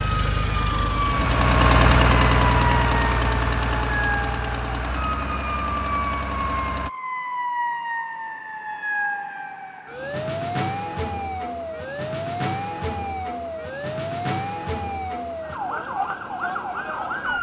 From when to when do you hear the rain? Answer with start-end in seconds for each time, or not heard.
not heard.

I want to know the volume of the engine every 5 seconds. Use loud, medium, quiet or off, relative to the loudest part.
loud, medium, off, off.